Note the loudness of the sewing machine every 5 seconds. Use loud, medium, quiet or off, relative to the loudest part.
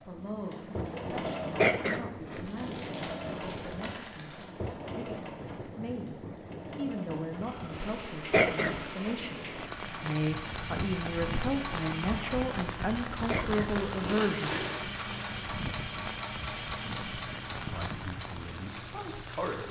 loud, medium, loud, loud.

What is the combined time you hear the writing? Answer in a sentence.
You can't hear the writing here.